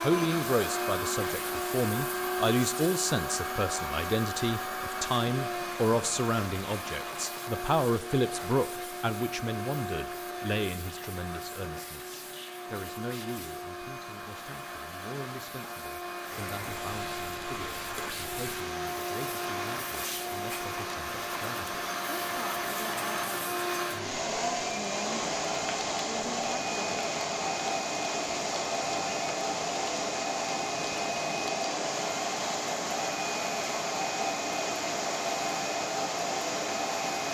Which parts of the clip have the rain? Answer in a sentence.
You can hear the rain from 16.2 to 37.2 s.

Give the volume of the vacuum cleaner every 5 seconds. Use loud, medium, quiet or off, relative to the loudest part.
loud, medium, medium, medium, loud, loud, loud, loud.